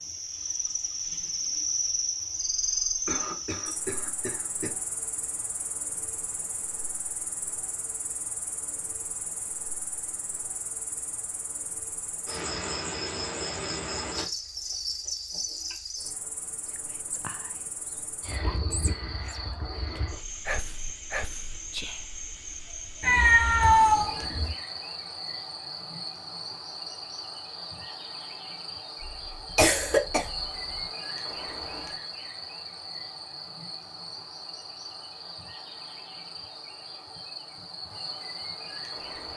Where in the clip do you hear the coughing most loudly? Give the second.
30 s.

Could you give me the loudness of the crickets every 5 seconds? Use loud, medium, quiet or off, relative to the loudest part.
loud, medium, loud, medium, medium, medium, medium, medium.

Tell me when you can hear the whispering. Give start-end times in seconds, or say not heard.
16.6-22.1.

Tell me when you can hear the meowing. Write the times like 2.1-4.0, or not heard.
23.0-24.6.